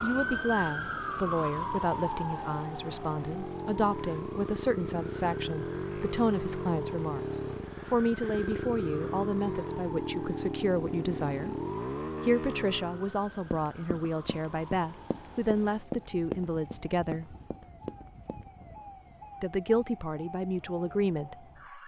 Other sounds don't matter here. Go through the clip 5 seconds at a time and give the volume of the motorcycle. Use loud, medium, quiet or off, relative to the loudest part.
medium, loud, loud, off, off.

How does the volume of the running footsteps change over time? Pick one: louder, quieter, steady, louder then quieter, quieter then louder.
louder then quieter.